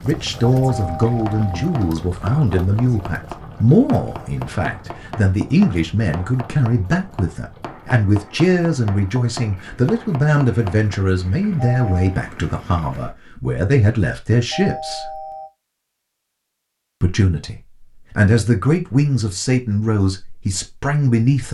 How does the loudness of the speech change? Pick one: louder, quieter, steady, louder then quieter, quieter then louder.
steady.